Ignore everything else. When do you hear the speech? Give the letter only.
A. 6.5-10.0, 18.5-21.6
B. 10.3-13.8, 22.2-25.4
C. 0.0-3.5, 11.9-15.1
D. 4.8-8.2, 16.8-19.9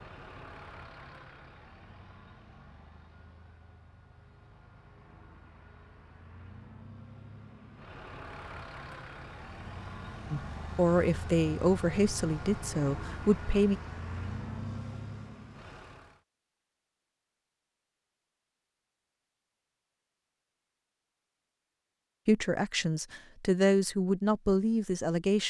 B.